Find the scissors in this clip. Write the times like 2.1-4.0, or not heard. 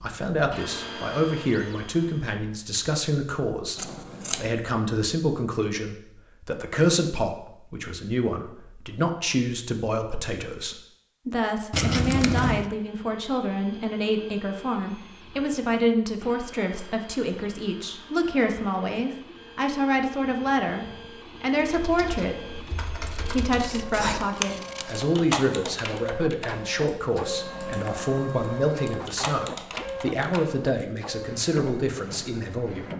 3.8-4.5, 11.7-12.7, 23.1-25.1.